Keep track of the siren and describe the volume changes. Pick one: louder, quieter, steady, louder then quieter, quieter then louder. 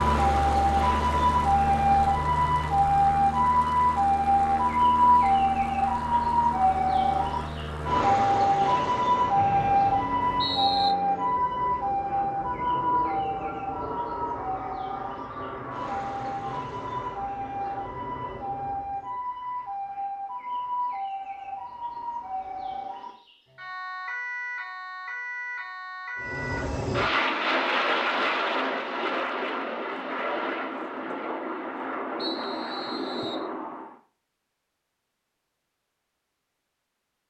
quieter.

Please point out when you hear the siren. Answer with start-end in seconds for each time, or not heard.
0.0-26.6.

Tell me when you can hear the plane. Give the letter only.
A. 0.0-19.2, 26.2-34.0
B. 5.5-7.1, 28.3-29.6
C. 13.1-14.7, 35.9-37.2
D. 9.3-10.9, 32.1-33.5
A.